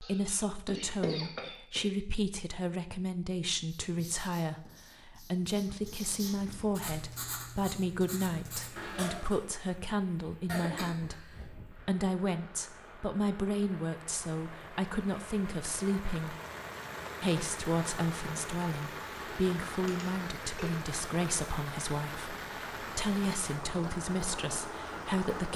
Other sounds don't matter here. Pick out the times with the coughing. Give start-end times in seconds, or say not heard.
0.0-1.9, 10.4-11.4, 19.9-20.8.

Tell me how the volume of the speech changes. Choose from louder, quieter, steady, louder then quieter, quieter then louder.
steady.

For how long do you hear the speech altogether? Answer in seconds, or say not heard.
25 s.